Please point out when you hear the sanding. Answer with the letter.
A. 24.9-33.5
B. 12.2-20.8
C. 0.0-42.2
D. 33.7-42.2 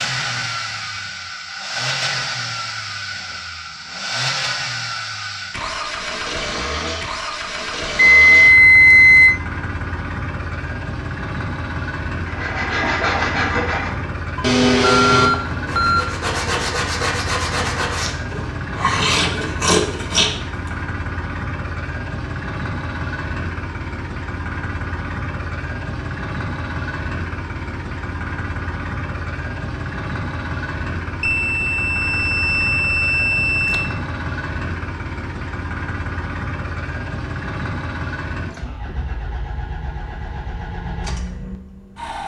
B.